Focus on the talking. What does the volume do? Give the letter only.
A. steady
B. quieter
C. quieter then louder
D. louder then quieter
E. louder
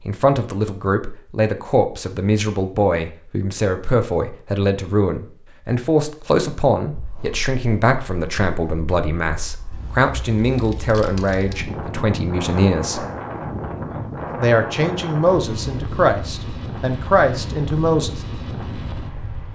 A.